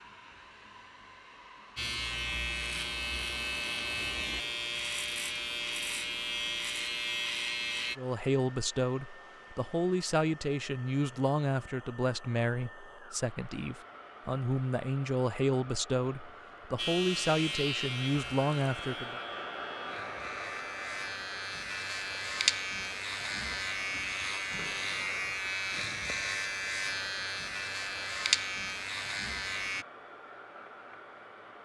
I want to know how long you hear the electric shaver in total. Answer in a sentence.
You can hear the electric shaver for 19 seconds altogether.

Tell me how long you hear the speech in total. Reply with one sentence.
The speech can be heard for 11 seconds in total.